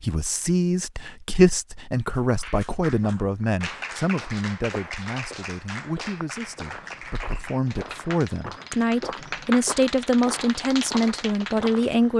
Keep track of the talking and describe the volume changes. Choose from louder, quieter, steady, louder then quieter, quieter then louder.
quieter then louder.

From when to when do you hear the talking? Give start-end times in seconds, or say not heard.
0.0-12.1.